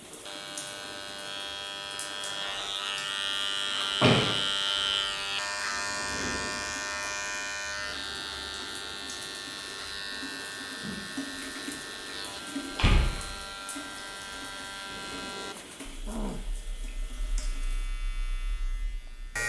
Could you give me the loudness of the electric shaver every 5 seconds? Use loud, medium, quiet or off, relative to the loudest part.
loud, loud, medium, medium.